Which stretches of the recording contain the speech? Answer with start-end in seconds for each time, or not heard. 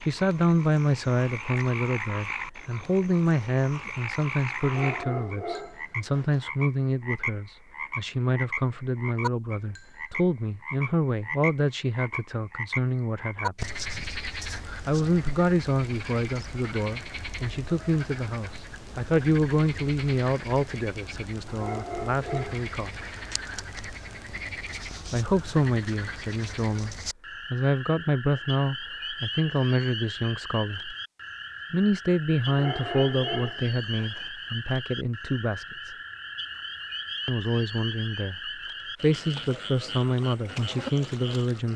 0.0-13.7, 14.8-22.9, 25.1-30.9, 31.7-36.0, 37.2-38.4, 39.0-41.7.